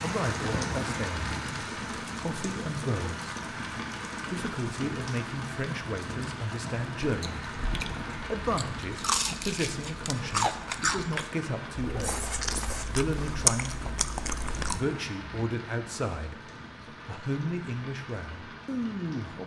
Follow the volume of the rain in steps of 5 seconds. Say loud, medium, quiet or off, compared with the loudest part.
loud, loud, medium, medium.